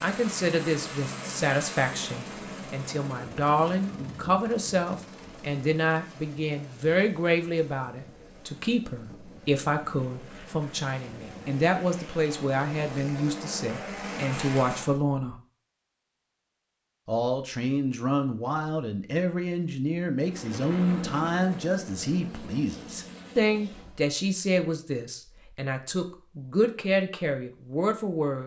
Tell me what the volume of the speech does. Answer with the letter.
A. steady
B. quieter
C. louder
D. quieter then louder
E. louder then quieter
A.